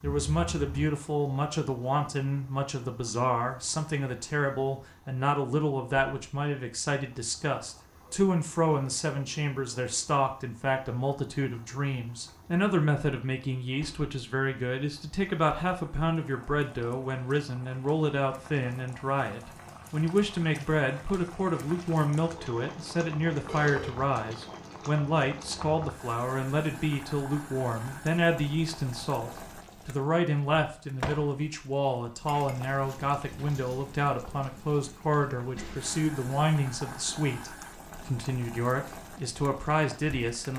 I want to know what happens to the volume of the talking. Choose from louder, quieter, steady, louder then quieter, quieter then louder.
steady.